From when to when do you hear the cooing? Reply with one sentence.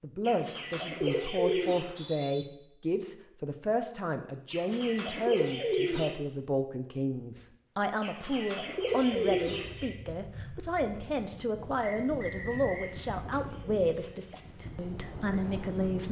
You can hear the cooing from 0.2 to 1.9 s, from 4.5 to 6.2 s, from 8.0 to 9.9 s and from 12.5 to 14.3 s.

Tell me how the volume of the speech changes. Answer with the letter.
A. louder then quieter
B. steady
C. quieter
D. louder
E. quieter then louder
B.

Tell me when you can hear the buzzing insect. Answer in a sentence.
The buzzing insect can't be heard in this clip.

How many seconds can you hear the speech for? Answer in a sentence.
The speech can be heard for 16 seconds in total.